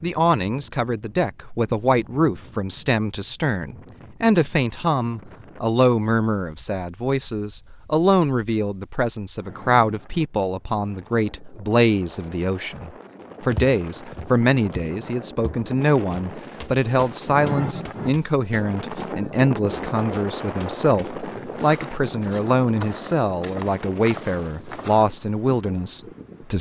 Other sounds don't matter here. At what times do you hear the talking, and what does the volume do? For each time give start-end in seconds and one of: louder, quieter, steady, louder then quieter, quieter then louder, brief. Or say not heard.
0.0-26.5 steady.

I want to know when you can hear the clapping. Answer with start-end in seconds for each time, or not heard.
not heard.